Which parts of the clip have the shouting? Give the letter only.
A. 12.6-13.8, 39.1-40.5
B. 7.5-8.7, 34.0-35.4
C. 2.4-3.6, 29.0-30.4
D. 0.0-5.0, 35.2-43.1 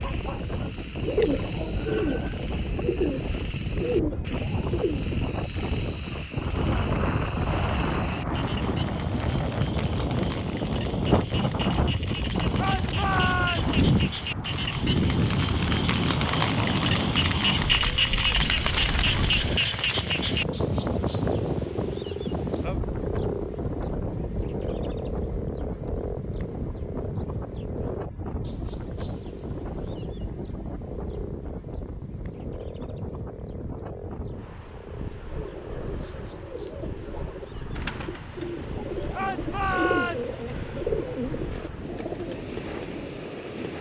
A.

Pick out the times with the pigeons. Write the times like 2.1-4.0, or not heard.
0.0-5.0, 35.2-43.1.